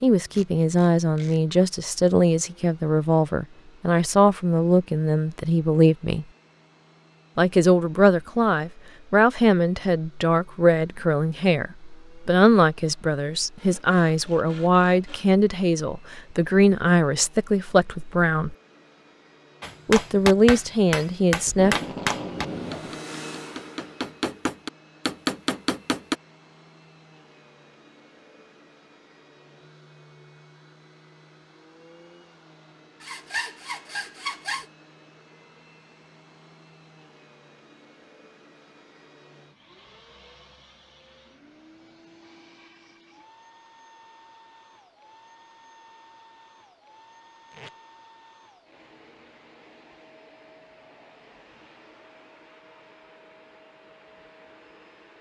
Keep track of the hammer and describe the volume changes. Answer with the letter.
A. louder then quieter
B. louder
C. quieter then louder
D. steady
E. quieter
C.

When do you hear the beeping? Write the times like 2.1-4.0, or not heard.
not heard.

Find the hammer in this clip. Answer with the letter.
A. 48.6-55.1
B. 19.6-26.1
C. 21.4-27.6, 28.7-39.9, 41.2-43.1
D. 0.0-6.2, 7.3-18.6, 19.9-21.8
B.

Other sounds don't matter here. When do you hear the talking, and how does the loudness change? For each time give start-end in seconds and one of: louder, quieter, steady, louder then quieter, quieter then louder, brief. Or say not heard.
0.0-6.2 steady
7.3-18.6 steady
19.9-21.8 brief.